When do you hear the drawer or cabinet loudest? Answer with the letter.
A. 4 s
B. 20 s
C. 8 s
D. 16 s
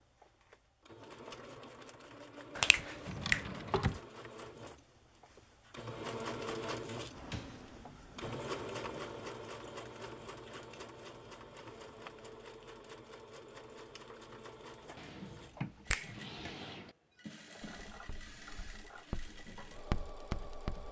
A.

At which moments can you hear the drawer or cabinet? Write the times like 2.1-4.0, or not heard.
3.0-4.0, 7.1-8.4, 14.9-16.9.